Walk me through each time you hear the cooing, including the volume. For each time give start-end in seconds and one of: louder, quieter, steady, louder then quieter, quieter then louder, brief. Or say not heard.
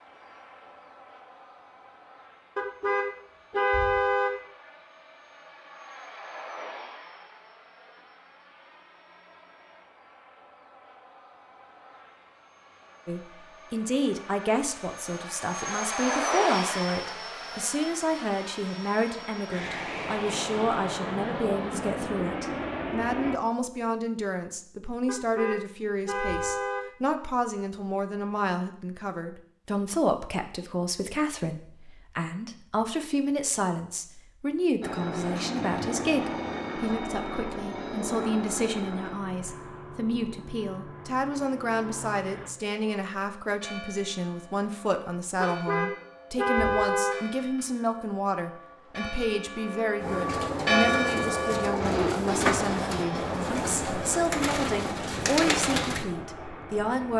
50.0-56.0 steady.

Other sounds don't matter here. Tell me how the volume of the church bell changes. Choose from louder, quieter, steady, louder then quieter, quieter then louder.
louder.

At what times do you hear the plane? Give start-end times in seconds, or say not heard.
0.0-23.4, 34.8-42.5, 52.2-57.1.